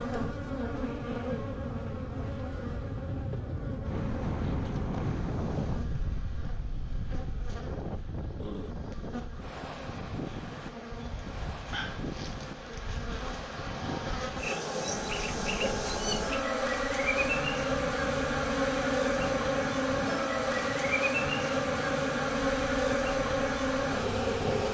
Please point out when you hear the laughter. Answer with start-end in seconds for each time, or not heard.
not heard.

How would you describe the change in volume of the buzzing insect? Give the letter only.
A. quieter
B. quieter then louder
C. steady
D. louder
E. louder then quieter
B.